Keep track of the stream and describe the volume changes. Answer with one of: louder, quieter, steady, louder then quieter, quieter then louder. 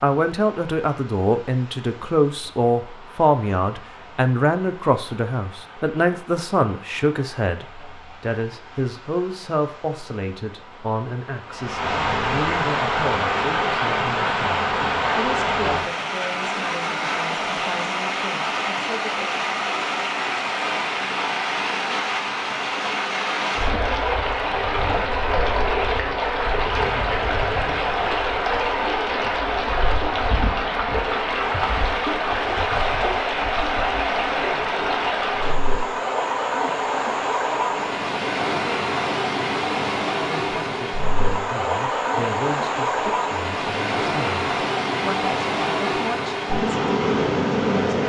louder.